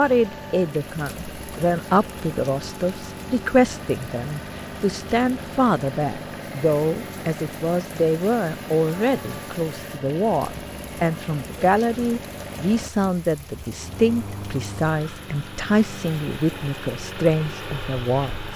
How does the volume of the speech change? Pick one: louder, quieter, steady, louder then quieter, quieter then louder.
steady.